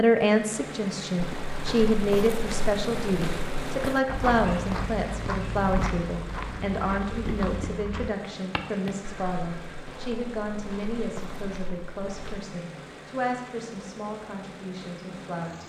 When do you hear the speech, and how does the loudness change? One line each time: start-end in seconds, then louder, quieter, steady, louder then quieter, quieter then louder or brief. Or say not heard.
0.0-15.6 quieter.